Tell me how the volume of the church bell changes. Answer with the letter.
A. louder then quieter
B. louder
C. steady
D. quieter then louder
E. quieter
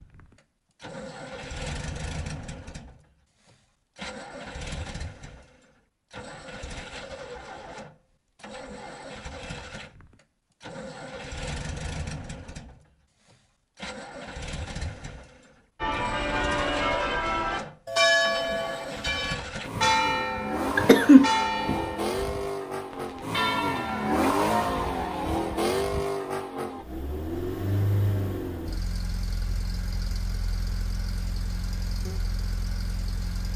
E.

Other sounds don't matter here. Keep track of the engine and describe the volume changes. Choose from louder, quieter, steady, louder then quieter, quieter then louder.
louder then quieter.